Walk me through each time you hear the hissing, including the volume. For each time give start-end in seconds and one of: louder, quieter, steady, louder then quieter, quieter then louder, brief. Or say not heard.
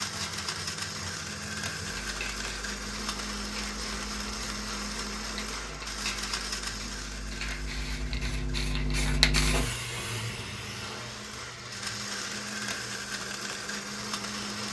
0.0-14.6 louder then quieter.